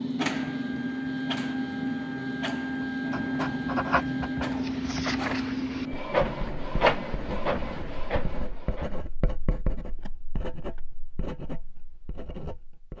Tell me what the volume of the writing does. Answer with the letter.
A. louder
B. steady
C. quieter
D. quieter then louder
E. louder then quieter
C.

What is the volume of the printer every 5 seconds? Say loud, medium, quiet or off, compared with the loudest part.
loud, loud, off.